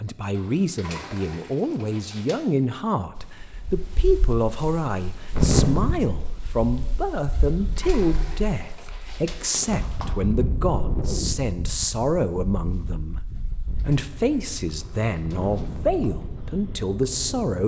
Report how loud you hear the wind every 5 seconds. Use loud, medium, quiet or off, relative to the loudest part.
quiet, loud, medium, medium.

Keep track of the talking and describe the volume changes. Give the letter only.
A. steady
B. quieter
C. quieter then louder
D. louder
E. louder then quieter
A.